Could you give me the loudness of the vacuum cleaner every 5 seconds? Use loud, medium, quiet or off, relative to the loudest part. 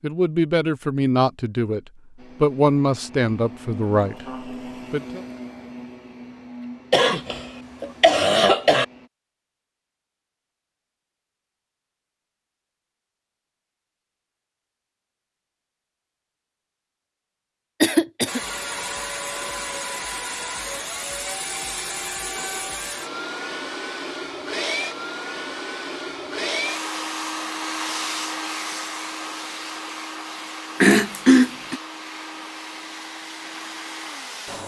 medium, medium, off, loud, loud, loud, medium.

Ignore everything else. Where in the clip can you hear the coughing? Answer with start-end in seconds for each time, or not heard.
6.9-8.8, 17.8-18.4, 30.8-31.8.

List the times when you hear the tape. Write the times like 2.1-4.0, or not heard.
not heard.